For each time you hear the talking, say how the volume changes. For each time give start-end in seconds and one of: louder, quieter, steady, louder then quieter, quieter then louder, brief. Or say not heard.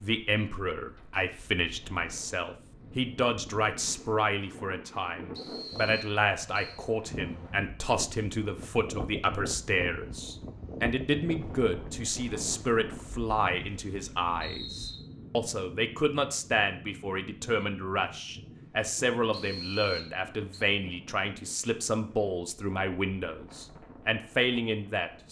0.0-25.2 steady.